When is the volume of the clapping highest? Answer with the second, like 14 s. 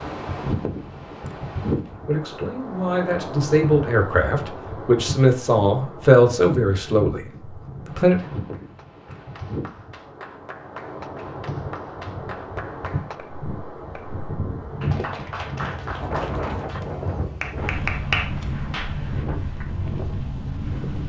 18 s.